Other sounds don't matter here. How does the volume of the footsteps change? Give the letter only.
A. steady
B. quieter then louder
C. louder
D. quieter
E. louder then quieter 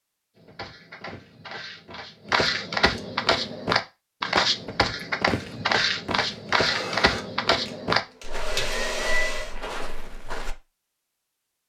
E.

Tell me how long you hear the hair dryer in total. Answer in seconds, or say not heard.
3 s.